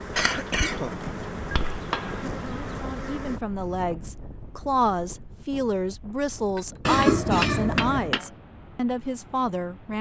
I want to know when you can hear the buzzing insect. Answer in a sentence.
The buzzing insect can be heard from 0.0 to 3.4 s.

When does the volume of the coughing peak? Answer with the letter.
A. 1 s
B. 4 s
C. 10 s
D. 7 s
D.